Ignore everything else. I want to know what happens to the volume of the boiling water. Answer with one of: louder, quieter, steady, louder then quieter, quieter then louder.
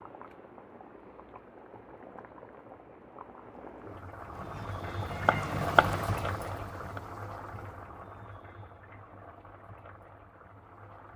louder then quieter.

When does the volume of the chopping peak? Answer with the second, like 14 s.
6 s.